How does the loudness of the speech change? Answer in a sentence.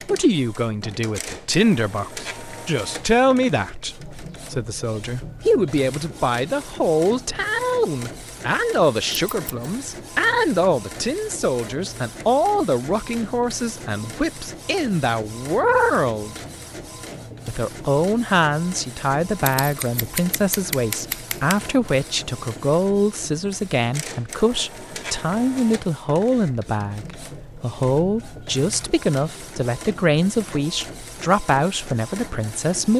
The volume of the speech stays about the same.